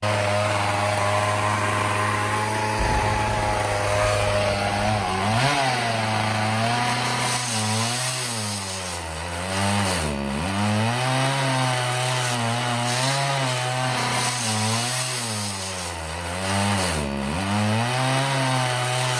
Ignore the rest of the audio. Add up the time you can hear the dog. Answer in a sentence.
The dog can't be heard in this clip.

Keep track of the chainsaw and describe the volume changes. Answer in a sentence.
The volume of the chainsaw stays about the same.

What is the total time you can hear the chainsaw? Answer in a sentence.
You can hear the chainsaw for 19 seconds altogether.